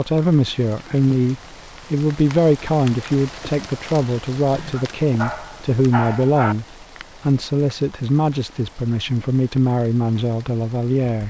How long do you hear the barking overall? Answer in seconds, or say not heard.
2 s.